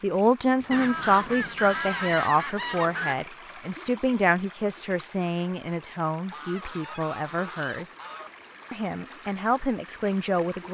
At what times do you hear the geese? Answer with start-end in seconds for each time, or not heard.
0.7-3.1, 6.2-8.3.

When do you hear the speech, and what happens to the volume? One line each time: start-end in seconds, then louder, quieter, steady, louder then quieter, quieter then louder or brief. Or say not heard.
0.0-7.8 quieter
8.7-10.6 brief.